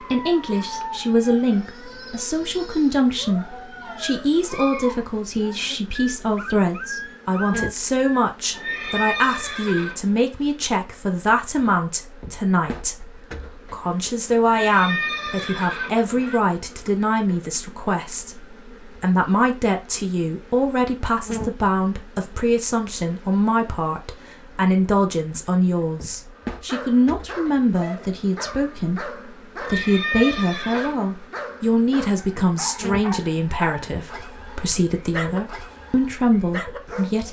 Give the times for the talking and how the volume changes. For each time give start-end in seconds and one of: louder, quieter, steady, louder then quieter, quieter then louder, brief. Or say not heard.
0.1-37.2 steady.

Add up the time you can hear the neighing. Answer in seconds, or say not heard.
5 s.